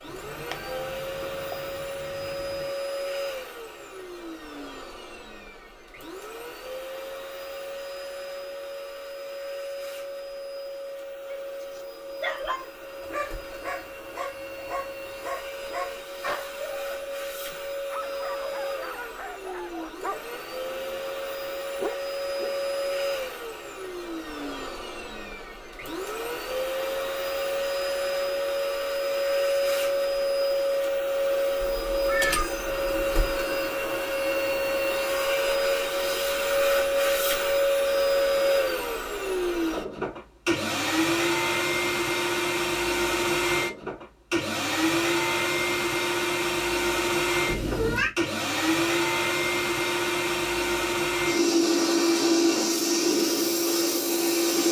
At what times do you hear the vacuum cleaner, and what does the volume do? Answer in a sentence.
You can hear the vacuum cleaner from 0.0 to 54.6 s, getting louder.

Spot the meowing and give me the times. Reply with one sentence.
You can hear the meowing from 0.1 to 2.7 s, from 31.6 to 33.3 s and from 47.5 to 48.1 s.